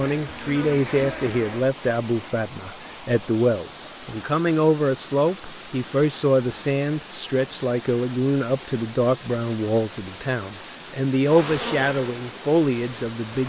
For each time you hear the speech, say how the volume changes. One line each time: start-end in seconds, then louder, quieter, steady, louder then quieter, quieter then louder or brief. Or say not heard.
0.0-13.4 steady.